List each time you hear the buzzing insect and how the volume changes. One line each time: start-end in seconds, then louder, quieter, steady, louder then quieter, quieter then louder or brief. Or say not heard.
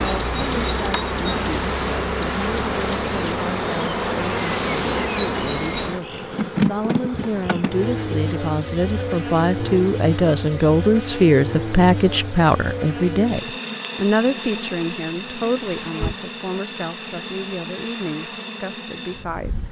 0.0-19.6 quieter.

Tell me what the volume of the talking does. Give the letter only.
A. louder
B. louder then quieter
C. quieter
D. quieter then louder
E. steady
B.